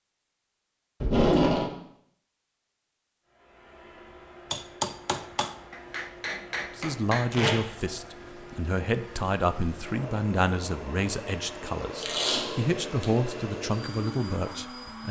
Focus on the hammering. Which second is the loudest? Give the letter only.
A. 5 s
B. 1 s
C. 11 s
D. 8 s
A.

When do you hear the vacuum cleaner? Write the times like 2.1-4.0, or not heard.
3.2-15.0.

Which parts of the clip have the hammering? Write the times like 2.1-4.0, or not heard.
4.5-7.3.